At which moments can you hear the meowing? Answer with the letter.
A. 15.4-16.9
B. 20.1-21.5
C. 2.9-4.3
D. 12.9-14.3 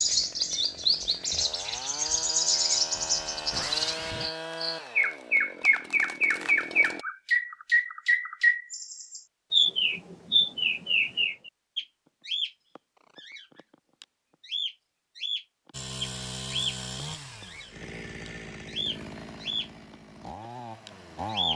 C.